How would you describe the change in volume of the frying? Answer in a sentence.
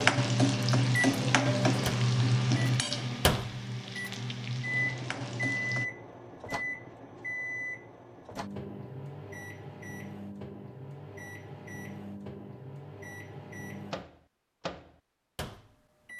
The loudness of the frying goes down.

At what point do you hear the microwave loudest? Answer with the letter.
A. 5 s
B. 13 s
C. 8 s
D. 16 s
A.